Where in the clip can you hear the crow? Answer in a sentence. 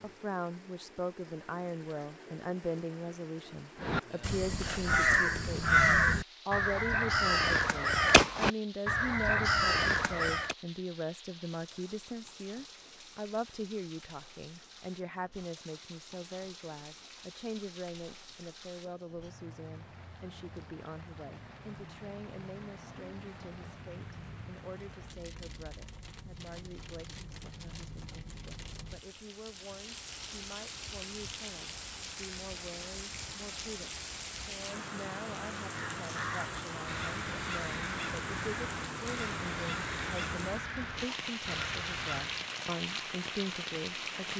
The crow can be heard from 3.8 to 10.6 s and from 35.7 to 42.5 s.